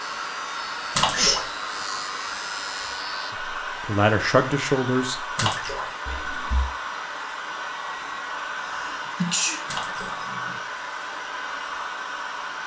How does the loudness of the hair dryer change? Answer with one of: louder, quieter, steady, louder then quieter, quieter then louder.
steady.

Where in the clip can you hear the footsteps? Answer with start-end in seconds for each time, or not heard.
not heard.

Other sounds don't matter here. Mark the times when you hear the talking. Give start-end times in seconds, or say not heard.
3.6-5.5.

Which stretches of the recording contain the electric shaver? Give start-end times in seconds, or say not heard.
0.0-3.4.